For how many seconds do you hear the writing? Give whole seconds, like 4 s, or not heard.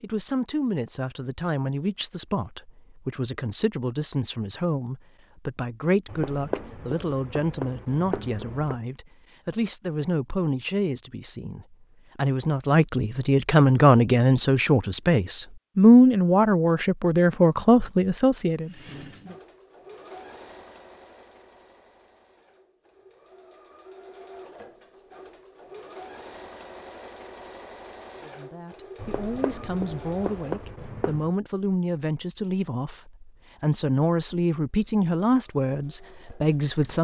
5 s.